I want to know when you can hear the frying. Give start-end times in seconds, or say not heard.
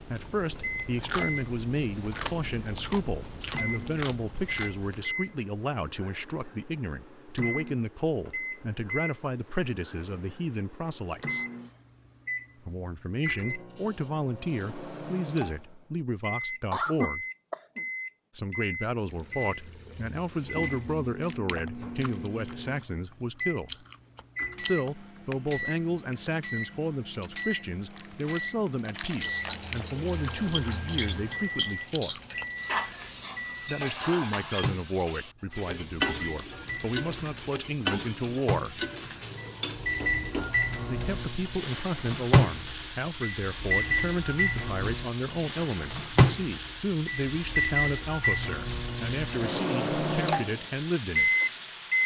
29.2-52.0.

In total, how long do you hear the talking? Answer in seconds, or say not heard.
45 s.